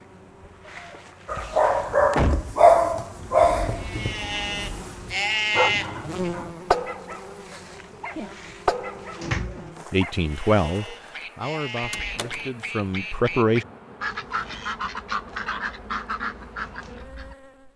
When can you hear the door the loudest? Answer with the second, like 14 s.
2 s.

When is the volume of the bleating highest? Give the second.
6 s.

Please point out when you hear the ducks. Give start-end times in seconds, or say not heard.
11.0-17.4.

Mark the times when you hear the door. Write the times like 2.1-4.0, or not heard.
1.4-2.5, 9.2-9.6, 11.8-12.3.